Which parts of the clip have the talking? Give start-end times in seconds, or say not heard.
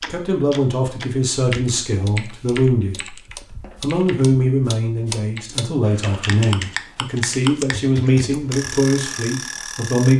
0.1-3.1, 3.8-10.1.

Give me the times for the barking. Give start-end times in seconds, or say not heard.
not heard.